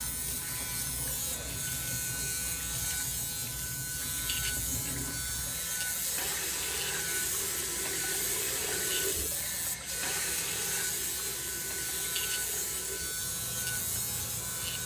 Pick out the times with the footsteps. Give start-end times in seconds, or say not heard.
not heard.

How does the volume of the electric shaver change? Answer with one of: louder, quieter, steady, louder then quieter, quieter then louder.
steady.